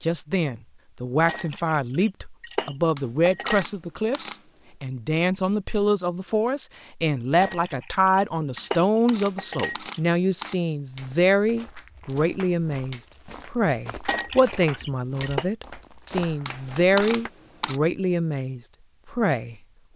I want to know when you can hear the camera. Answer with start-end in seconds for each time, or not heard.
3.0-4.8, 8.6-10.6, 16.4-17.8.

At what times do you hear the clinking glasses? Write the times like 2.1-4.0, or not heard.
1.2-3.6, 7.4-10.0, 14.1-15.4.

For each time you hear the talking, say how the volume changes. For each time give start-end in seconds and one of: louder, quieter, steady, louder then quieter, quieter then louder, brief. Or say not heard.
0.0-19.9 steady.